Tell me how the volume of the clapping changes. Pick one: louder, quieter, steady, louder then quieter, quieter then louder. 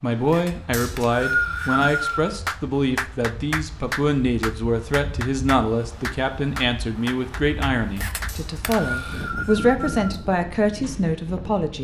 quieter.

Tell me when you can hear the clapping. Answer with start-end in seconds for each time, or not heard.
2.5-8.8.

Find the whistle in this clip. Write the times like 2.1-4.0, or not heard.
0.7-2.3, 8.2-10.2.